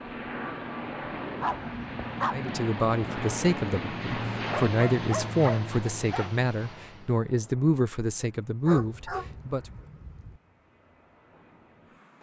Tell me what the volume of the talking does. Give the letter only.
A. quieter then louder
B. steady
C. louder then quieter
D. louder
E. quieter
B.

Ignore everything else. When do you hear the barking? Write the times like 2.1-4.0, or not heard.
1.4-2.4, 4.4-6.3, 8.7-10.4.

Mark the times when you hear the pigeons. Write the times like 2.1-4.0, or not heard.
not heard.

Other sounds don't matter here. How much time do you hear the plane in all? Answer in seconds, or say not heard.
12 s.